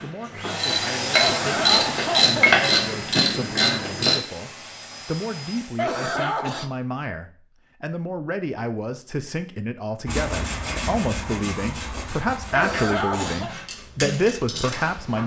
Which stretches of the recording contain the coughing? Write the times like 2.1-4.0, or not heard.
1.1-2.6, 5.8-6.7, 12.5-13.6.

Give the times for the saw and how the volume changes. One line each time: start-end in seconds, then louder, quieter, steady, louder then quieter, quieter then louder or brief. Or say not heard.
10.1-15.2 quieter.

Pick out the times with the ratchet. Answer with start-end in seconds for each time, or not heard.
0.0-4.2, 13.1-15.2.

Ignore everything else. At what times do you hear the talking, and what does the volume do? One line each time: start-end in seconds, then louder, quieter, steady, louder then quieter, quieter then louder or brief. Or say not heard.
0.0-15.2 louder.